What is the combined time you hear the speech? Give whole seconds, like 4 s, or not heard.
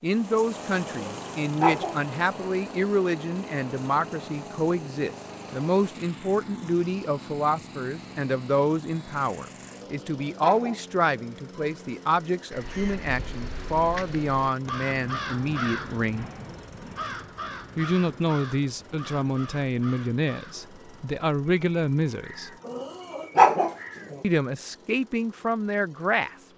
23 s.